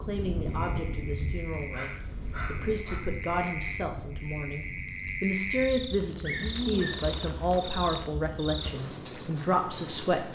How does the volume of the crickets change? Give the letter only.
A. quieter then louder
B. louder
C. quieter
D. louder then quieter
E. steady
B.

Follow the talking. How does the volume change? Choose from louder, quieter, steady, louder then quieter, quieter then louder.
louder.